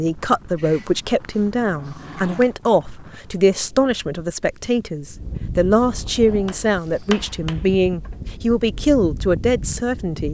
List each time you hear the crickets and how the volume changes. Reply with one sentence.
You can't hear the crickets here.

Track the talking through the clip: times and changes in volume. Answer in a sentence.
The talking can be heard from 0.0 to 10.3 s, at a steady volume.